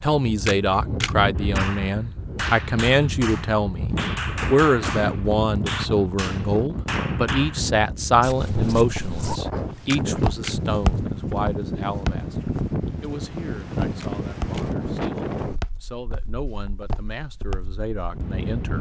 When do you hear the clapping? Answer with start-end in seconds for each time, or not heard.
1.4-7.6.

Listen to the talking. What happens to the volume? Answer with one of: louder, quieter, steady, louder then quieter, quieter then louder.
quieter.